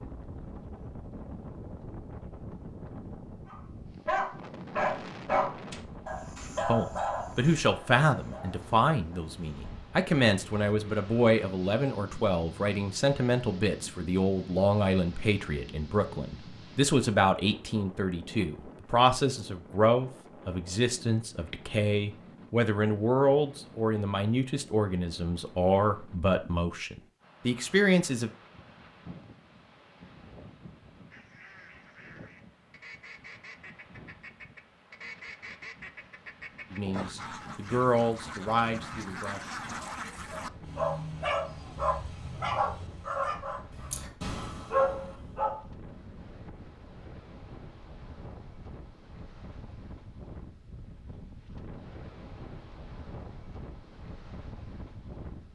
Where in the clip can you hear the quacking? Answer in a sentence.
The quacking can be heard from 31.1 to 40.5 s.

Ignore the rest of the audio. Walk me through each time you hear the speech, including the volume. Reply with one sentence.
The speech can be heard from 6.6 to 28.3 s, at a steady volume; and briefly from 36.7 to 39.5 s.